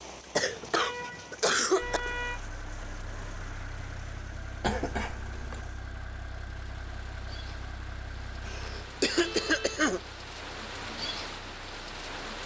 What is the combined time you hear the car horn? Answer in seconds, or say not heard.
2 s.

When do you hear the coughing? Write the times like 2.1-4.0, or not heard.
0.3-2.0, 4.6-5.6, 8.4-10.0.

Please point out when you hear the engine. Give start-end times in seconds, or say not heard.
1.8-12.4.